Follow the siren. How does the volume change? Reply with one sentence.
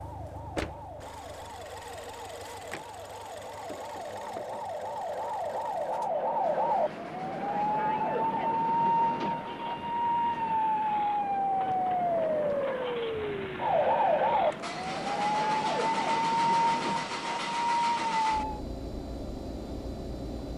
The loudness of the siren goes up.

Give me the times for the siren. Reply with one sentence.
You can hear the siren from 0.0 to 18.6 s.